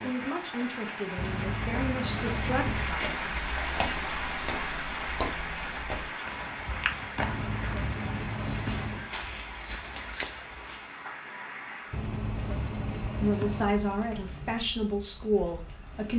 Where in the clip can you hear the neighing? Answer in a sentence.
The neighing can be heard from 1.1 to 2.9 s, from 7.2 to 9.1 s and from 11.9 to 13.8 s.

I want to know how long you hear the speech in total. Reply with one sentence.
The speech can be heard for 6 seconds in total.